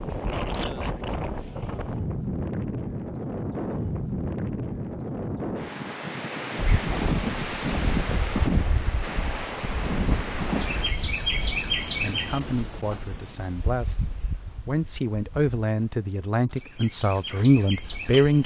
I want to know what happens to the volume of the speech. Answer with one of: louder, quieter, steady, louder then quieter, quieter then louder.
louder.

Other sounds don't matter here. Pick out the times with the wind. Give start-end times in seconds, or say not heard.
0.0-11.1.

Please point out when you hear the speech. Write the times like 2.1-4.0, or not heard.
12.0-18.4.